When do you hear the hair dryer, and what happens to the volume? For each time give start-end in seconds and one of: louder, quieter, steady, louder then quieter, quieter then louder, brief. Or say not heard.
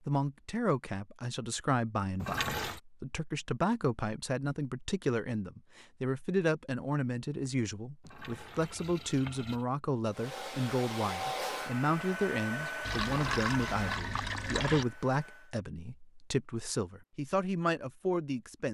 10.1-15.6 quieter.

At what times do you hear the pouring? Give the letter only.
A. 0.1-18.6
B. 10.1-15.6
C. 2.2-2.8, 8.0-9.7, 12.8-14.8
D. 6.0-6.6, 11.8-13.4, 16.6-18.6
C.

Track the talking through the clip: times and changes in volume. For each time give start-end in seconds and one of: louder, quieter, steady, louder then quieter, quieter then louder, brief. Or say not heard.
0.1-18.6 steady.